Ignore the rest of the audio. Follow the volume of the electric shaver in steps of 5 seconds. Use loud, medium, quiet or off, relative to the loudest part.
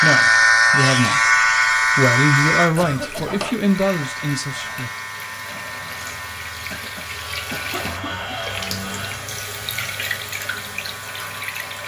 loud, quiet, quiet.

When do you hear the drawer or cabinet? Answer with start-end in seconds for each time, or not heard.
3.1-3.6, 7.7-9.3.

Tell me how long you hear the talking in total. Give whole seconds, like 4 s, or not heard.
5 s.